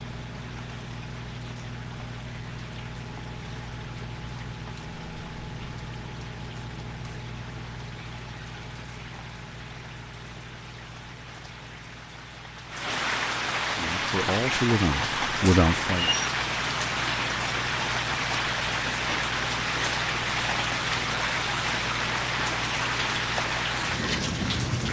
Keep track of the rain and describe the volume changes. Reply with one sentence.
The volume of the rain goes up.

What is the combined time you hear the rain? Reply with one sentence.
The rain can be heard for 25 seconds in total.